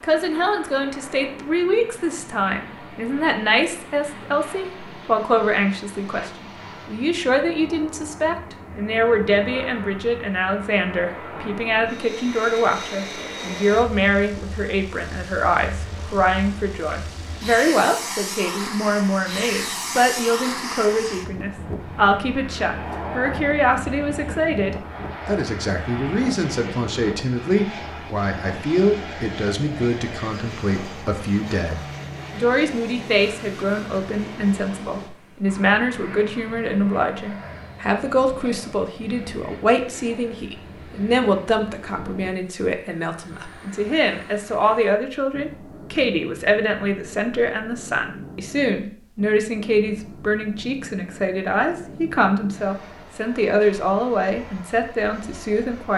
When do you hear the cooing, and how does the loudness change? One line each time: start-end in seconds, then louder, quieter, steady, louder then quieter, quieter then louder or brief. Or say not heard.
not heard.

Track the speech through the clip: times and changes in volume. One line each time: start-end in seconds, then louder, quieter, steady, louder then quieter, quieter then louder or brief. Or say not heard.
0.0-55.9 steady.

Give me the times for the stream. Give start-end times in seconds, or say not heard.
not heard.